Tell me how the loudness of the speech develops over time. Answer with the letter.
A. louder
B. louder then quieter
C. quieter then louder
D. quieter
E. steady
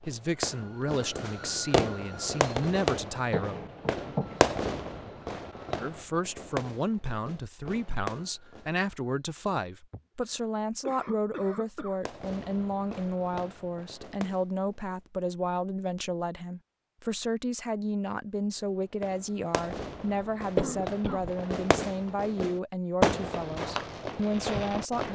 E.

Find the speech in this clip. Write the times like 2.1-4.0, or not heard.
0.0-3.5, 5.8-25.1.